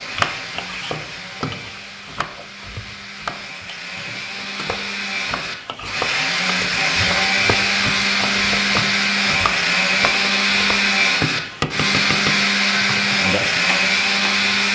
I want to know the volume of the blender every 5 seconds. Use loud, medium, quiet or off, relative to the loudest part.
quiet, loud, loud.